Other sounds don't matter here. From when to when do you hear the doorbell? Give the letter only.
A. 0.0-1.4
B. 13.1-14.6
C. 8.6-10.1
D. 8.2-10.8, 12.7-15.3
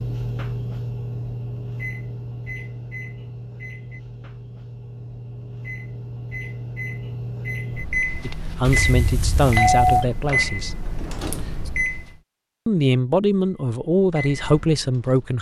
C.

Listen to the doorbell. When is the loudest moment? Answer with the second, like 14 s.
10 s.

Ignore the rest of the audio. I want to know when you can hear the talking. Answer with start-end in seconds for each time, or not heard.
8.2-10.8, 12.7-15.3.